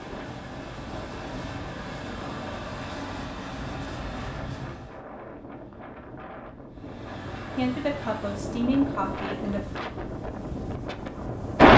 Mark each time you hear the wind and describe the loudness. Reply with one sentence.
The wind can be heard from 0.0 to 11.7 s, getting louder.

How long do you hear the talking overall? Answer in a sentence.
The talking can be heard for 2 seconds in total.